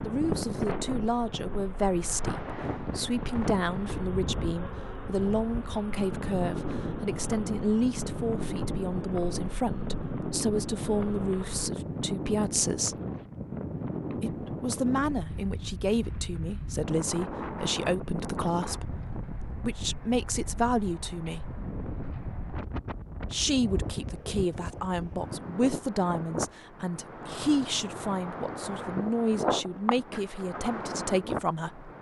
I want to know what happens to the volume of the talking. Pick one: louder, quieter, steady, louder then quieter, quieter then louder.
steady.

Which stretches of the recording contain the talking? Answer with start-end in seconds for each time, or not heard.
0.0-12.9, 14.2-21.6, 23.3-31.9.